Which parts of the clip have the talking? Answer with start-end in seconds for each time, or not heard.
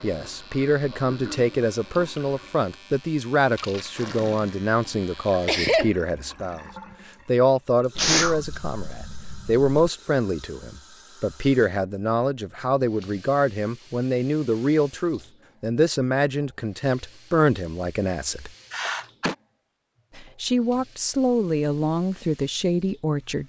0.0-6.7, 7.2-18.5, 20.1-23.4.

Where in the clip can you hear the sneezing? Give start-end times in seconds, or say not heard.
5.5-5.9, 8.0-9.7, 18.7-19.4.